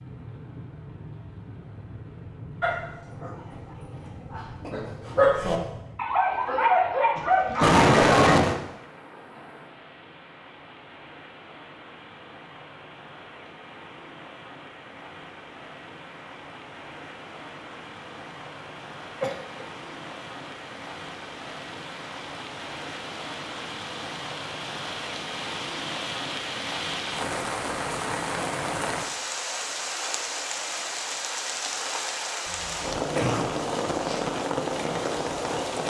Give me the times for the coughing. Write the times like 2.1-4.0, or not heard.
7.2-8.6, 19.2-19.6, 32.5-34.2.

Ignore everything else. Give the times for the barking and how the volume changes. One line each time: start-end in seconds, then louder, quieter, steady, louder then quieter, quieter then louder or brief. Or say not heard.
2.6-8.4 louder.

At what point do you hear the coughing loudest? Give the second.
8 s.